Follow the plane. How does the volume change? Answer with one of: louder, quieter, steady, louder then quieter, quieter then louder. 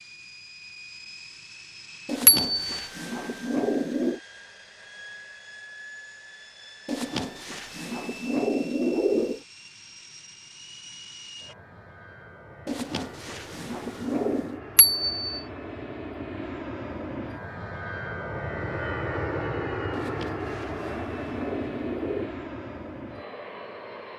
louder.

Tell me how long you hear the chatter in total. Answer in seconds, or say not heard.
not heard.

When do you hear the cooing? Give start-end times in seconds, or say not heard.
2.0-4.2, 6.8-9.4, 12.7-14.6, 19.9-22.3.